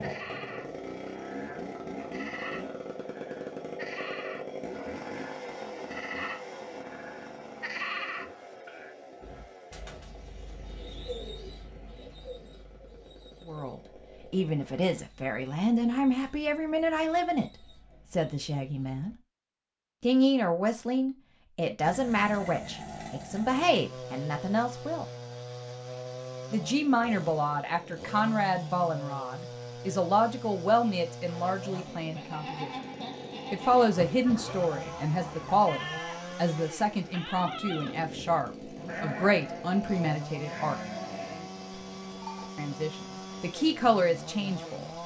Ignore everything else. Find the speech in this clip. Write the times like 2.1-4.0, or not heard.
13.4-17.4, 18.1-19.1, 20.0-25.1, 26.5-32.7, 33.5-40.8, 42.5-44.9.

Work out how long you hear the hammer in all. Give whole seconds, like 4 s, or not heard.
not heard.